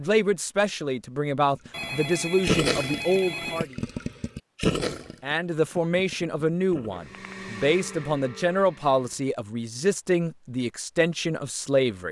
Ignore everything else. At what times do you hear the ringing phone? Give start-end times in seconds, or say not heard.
1.7-3.7, 7.1-8.6.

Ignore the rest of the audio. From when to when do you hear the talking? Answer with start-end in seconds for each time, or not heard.
0.0-3.8, 5.2-12.0.